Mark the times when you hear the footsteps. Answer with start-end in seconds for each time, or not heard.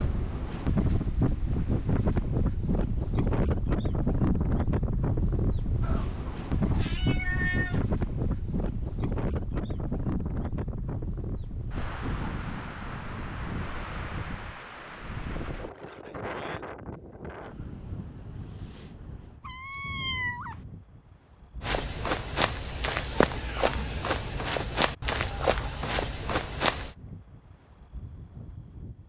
21.6-26.9.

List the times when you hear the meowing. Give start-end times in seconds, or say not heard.
5.8-7.8, 19.4-20.6.